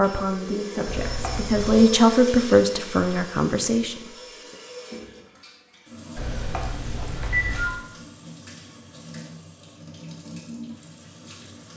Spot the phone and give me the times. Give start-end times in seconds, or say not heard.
0.8-1.9, 6.2-7.8.